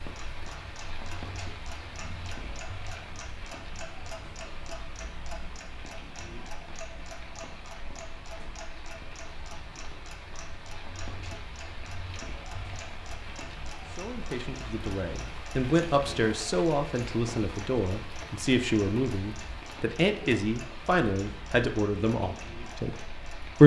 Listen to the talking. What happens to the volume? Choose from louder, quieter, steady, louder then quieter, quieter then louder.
steady.